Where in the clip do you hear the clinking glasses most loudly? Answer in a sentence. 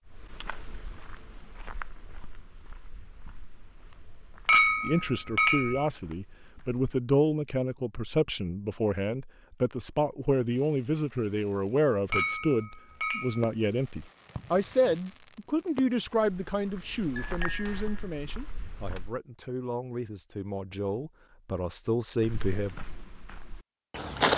The volume of the clinking glasses peaks at 5 seconds.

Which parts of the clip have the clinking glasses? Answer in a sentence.
You can hear the clinking glasses from 4.5 to 5.9 s, from 12.1 to 13.5 s and from 17.1 to 17.8 s.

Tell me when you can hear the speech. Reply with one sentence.
The speech can be heard from 4.8 to 22.8 s.